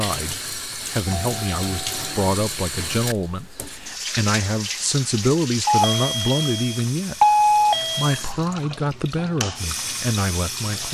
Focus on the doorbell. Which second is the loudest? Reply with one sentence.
The loudest moment of the doorbell is at 7 seconds.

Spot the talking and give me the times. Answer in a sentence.
You can hear the talking from 0.0 to 10.8 s.